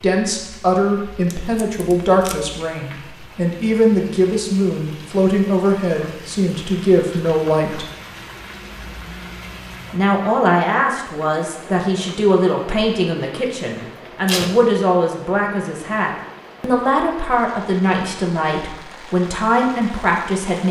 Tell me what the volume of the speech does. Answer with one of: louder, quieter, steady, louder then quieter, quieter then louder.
steady.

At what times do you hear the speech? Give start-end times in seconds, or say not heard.
0.0-7.9, 9.9-20.6.